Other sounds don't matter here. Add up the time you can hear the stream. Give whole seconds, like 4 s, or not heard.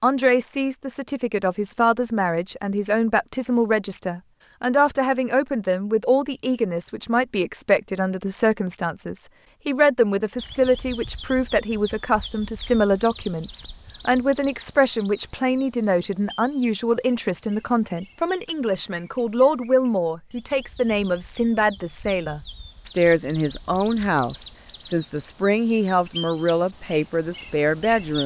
not heard.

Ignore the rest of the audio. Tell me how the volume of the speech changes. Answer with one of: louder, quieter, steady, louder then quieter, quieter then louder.
steady.